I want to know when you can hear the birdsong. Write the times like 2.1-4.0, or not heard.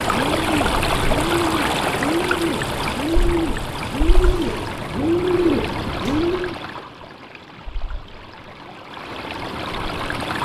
0.0-6.5.